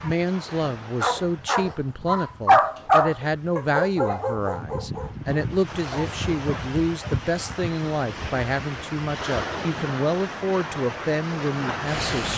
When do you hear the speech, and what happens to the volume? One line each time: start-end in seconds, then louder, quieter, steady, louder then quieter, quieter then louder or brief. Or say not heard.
0.0-12.3 steady.